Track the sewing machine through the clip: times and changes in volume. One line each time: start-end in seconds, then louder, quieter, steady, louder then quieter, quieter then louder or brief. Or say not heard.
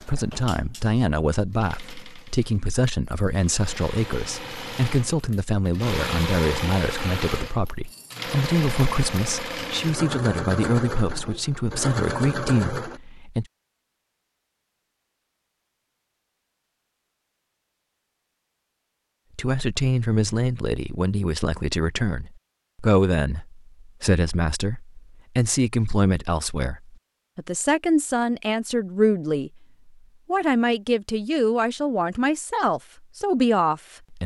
0.0-13.0 louder.